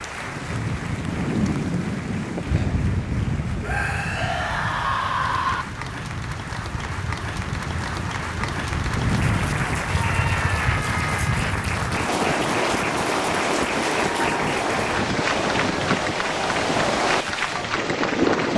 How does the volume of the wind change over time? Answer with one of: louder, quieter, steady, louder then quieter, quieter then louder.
quieter then louder.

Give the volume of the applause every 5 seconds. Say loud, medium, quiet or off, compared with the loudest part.
medium, loud, loud, loud.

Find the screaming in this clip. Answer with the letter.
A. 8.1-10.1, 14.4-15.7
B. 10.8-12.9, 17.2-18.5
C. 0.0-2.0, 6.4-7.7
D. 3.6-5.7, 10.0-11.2
D.